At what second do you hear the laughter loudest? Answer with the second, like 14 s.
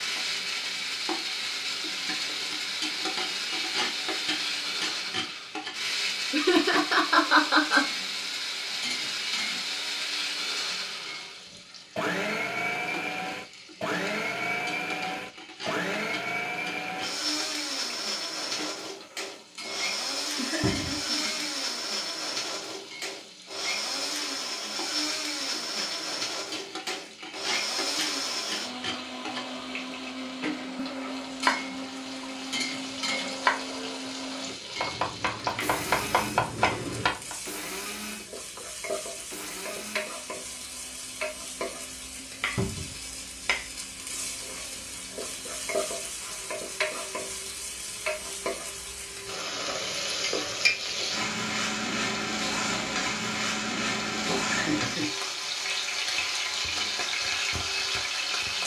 7 s.